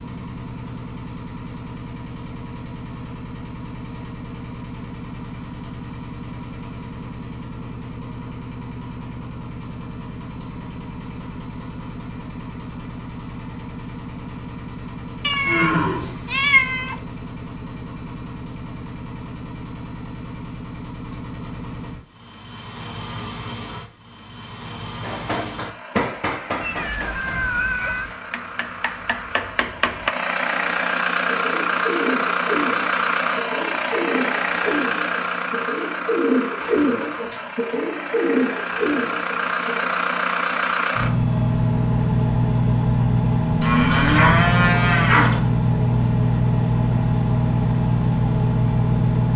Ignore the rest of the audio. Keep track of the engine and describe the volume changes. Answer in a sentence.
The volume of the engine goes up.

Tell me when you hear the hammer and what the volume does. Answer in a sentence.
You can hear the hammer from 25.0 to 30.1 s, getting quieter then louder.